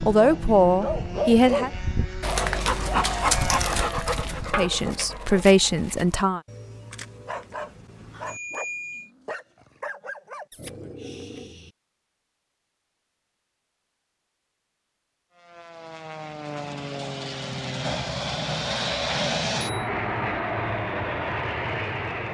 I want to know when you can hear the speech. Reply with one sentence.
You can hear the speech from 0.0 to 1.7 s and from 4.5 to 6.4 s.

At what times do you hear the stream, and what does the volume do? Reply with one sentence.
You can't hear the stream here.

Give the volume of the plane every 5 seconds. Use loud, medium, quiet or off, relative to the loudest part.
medium, off, off, loud, loud.